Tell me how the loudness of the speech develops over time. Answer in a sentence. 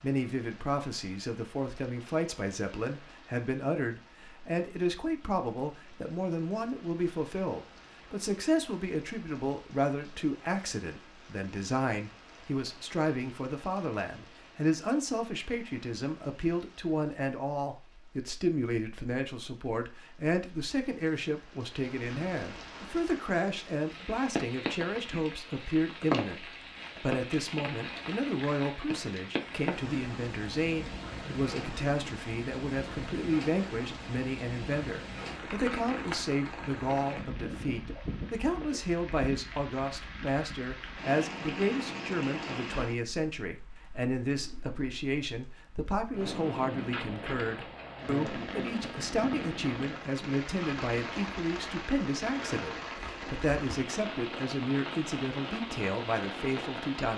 The volume of the speech stays about the same.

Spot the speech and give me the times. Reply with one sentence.
The speech can be heard from 0.0 to 57.1 s.